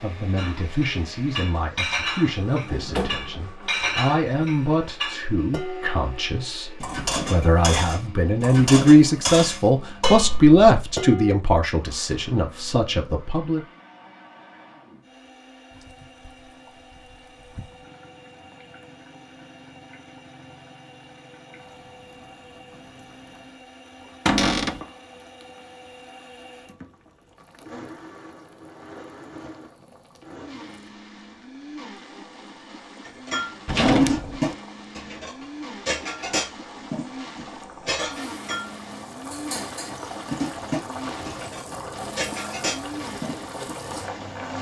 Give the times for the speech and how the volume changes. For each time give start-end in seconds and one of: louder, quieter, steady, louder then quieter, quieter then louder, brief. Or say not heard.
0.0-13.7 louder then quieter.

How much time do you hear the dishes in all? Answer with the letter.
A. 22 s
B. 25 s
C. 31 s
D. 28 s
A.